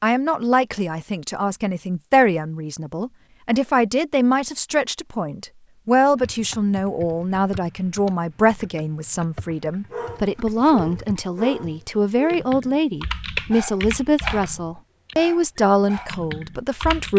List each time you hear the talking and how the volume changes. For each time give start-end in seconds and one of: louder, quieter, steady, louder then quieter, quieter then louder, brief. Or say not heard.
0.0-17.1 steady.